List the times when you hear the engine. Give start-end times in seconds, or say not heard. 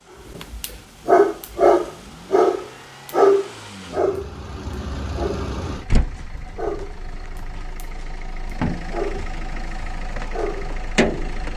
0.0-11.5.